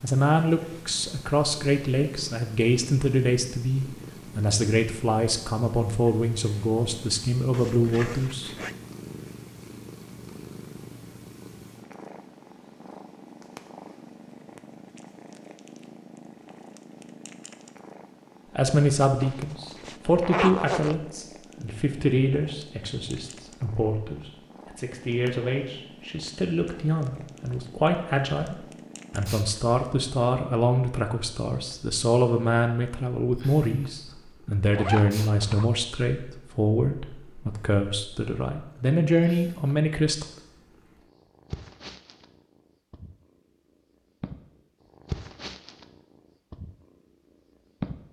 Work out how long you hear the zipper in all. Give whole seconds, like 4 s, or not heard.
4 s.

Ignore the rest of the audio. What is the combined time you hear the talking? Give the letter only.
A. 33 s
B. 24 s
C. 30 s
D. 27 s
C.